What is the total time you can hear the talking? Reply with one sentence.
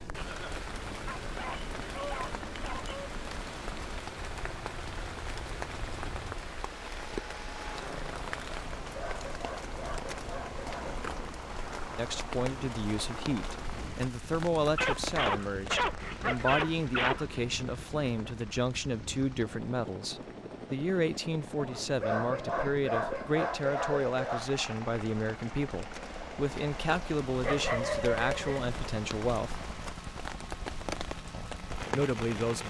You can hear the talking for 19 seconds altogether.